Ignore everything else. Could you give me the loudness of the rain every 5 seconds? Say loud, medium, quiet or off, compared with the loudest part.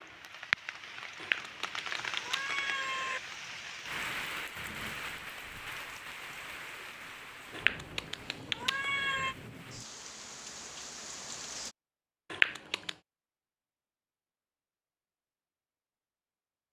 loud, medium, medium, off.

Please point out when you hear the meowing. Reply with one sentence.
The meowing can be heard from 1.2 to 3.2 s, from 7.5 to 9.3 s and from 12.3 to 12.9 s.